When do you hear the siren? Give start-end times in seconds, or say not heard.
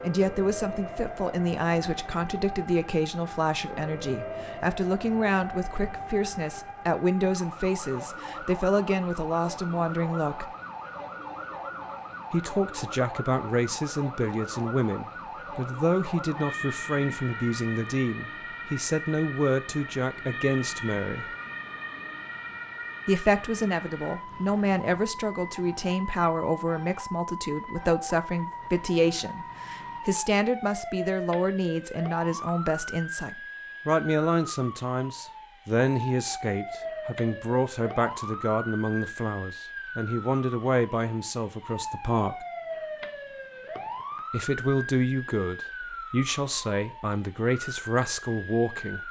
0.0-49.0.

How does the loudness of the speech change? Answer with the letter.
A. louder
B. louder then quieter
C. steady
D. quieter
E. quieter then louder
C.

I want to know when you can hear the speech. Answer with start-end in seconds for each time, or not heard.
0.0-10.5, 12.3-21.2, 23.1-42.5, 44.3-49.0.